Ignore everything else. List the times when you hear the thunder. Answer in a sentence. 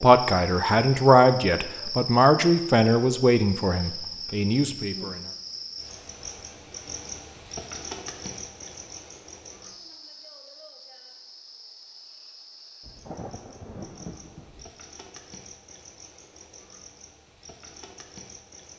The thunder can be heard from 12.8 to 14.7 s.